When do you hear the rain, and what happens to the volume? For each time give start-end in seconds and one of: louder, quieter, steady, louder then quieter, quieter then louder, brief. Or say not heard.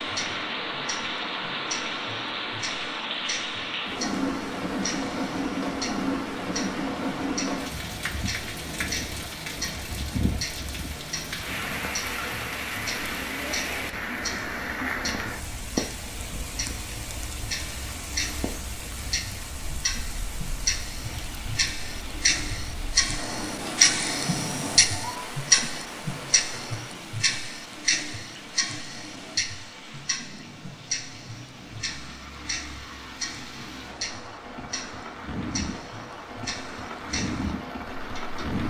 0.0-38.6 quieter.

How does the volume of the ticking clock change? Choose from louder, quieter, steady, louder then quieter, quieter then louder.
louder then quieter.